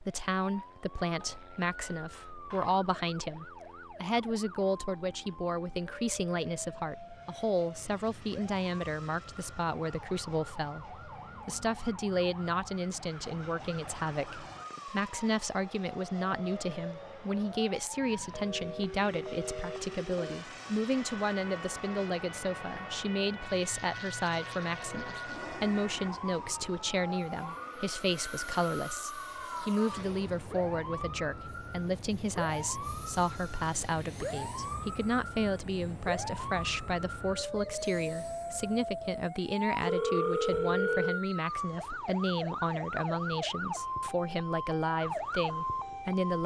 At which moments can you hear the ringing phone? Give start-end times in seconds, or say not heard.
1.2-2.8, 18.3-20.4, 39.8-41.2.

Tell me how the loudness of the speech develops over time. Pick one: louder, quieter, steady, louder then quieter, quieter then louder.
steady.